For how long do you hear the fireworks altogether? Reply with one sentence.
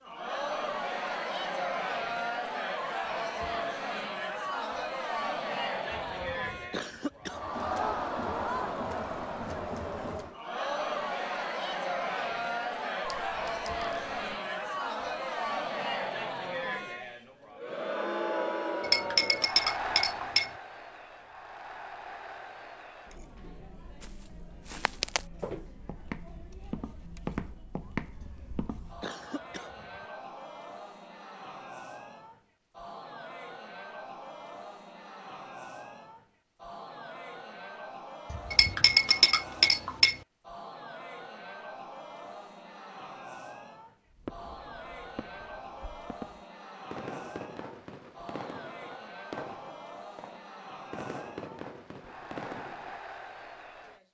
You can hear the fireworks for 9 seconds altogether.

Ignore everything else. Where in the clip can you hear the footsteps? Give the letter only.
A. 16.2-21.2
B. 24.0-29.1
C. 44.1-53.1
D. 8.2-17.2
B.